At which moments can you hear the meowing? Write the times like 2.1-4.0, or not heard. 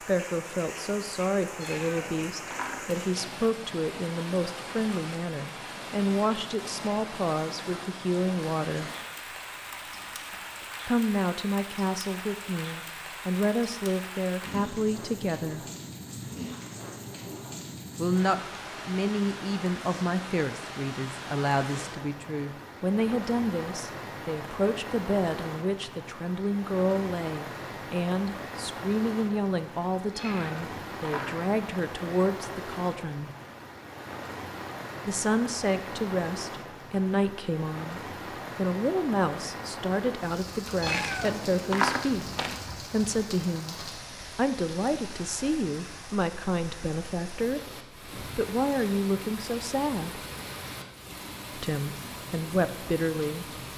1.6-3.2, 30.1-31.4, 40.8-42.5.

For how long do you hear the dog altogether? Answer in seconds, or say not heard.
not heard.